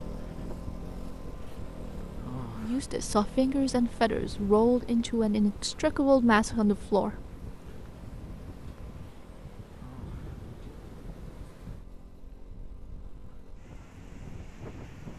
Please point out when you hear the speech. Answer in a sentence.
You can hear the speech from 2.5 to 7.2 s.